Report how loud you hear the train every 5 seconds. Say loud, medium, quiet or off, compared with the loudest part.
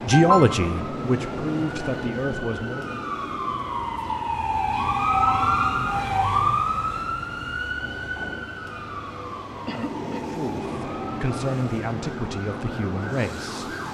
loud, medium, loud.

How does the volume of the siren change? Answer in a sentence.
The volume of the siren goes up, then down.